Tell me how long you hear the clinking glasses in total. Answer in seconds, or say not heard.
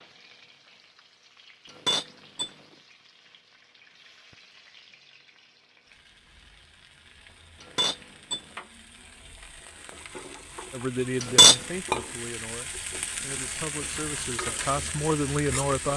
2 s.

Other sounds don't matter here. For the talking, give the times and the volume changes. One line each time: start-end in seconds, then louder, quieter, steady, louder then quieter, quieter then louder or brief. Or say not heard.
10.7-15.9 quieter then louder.